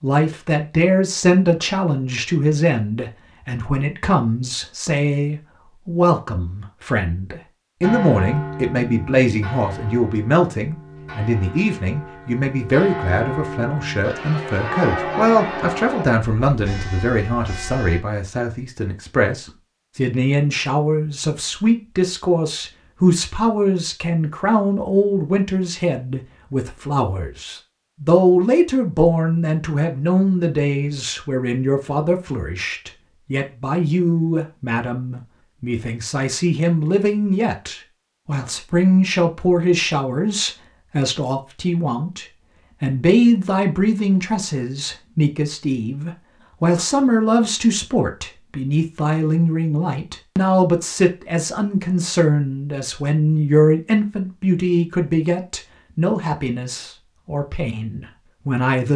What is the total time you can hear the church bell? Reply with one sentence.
The church bell can be heard for 10 seconds in total.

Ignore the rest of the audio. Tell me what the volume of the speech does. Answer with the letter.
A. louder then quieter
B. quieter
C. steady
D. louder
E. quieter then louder
C.